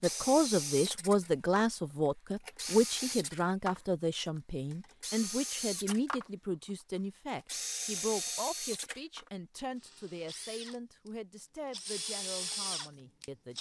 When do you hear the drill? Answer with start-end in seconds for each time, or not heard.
0.0-6.3, 7.3-13.5.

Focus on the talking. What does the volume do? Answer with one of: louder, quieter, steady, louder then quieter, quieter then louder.
quieter.